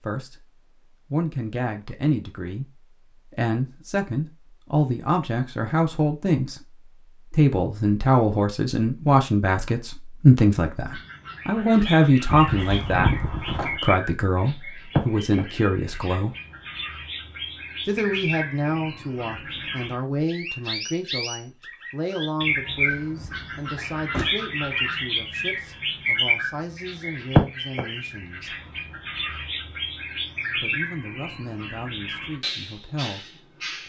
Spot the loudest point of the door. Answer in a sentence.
The loudest moment of the door is at 13 seconds.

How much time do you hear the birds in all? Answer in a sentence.
You can hear the birds for 23 seconds altogether.